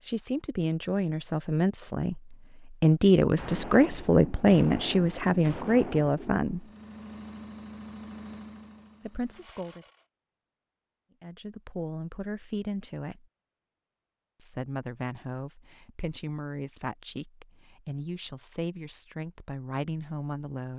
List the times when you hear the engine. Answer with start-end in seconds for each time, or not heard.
6.5-10.1.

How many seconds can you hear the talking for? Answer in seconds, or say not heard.
16 s.